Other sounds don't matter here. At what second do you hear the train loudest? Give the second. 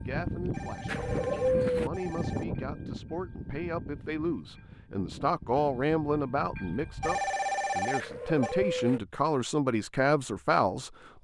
2 s.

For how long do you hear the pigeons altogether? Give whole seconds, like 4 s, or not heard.
2 s.